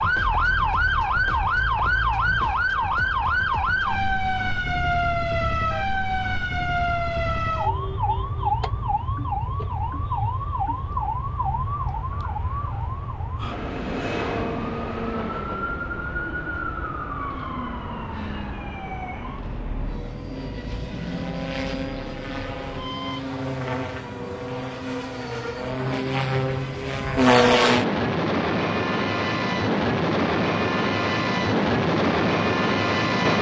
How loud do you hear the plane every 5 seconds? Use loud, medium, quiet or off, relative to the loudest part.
quiet, quiet, quiet, quiet, medium, loud, loud.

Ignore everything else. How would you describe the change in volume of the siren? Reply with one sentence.
The loudness of the siren goes down.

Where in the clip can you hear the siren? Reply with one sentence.
You can hear the siren from 0.0 to 23.2 s.